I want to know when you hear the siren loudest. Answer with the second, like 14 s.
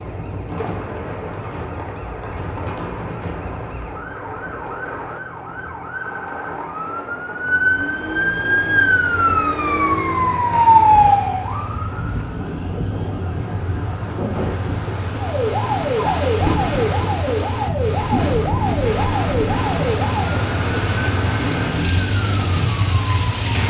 11 s.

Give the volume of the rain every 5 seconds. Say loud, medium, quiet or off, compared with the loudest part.
medium, medium, medium, loud, loud.